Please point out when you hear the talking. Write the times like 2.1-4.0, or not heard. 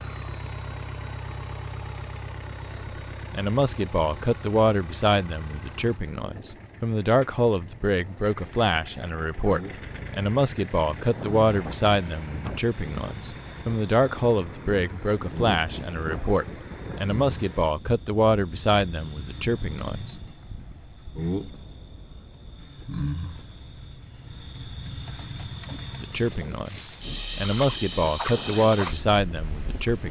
3.3-20.1, 26.0-30.0.